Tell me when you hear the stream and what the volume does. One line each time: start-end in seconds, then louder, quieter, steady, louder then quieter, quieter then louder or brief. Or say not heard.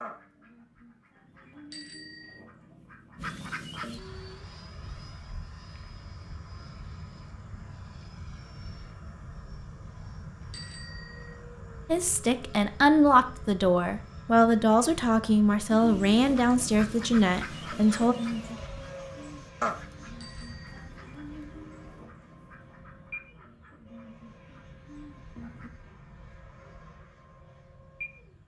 not heard.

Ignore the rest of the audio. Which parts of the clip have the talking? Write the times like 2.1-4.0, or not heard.
11.8-18.1.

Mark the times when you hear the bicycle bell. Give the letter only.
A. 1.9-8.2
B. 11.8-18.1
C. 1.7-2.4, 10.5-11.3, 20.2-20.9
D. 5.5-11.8
C.